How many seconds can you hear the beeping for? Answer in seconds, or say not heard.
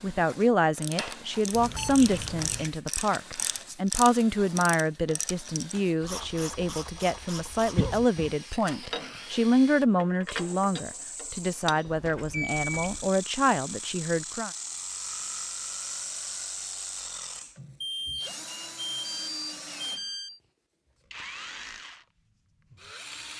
5 s.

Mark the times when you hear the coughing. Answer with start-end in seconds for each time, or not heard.
7.8-8.3.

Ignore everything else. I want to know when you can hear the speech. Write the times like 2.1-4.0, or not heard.
0.0-14.5.